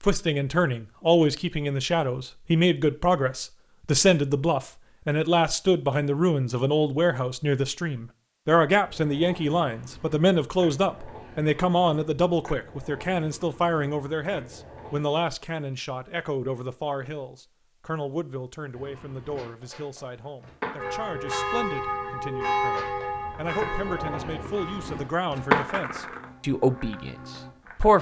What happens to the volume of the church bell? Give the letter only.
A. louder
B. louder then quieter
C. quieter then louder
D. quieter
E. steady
D.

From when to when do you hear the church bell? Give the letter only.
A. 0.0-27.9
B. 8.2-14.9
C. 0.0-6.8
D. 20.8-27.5
D.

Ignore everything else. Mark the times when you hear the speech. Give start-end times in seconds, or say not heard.
0.0-27.9.